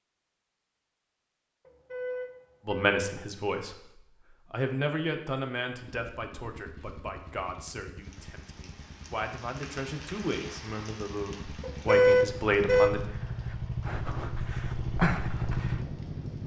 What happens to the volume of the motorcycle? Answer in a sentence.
The loudness of the motorcycle goes up.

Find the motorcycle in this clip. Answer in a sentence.
The motorcycle can be heard from 5.8 to 16.4 s.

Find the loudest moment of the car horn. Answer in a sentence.
The loudest moment of the car horn is at 12 seconds.